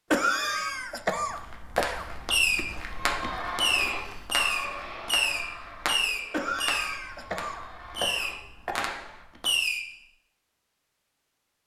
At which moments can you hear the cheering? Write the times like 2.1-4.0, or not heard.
2.8-9.2.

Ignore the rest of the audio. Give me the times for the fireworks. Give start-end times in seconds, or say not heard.
1.8-9.8.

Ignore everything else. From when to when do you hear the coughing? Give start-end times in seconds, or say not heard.
0.1-2.0, 6.3-8.9.